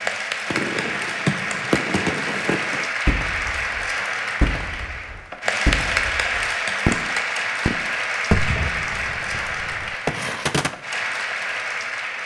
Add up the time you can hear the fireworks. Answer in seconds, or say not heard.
10 s.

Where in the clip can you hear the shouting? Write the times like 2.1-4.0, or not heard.
not heard.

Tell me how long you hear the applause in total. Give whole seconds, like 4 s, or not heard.
12 s.